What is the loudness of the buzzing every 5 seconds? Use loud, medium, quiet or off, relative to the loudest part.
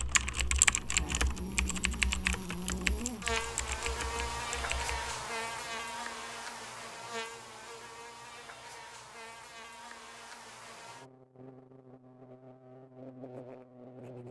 loud, loud, medium.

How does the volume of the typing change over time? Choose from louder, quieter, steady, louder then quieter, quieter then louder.
quieter.